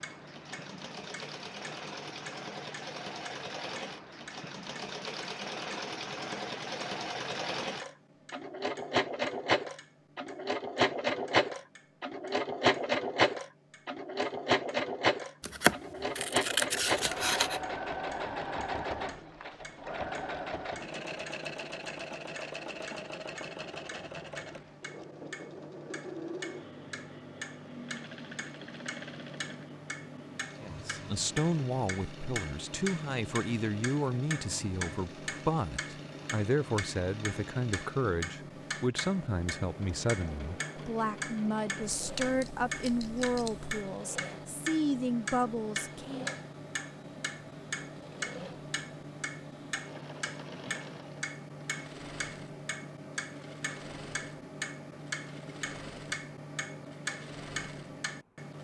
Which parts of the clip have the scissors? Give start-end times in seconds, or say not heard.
15.4-17.6, 42.0-43.7.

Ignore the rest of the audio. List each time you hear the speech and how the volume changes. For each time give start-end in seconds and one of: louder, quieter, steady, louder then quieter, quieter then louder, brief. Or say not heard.
30.6-46.3 steady.